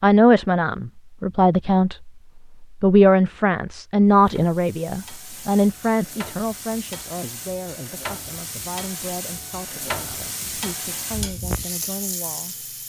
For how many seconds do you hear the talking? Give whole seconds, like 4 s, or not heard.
13 s.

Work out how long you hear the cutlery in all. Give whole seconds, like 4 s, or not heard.
not heard.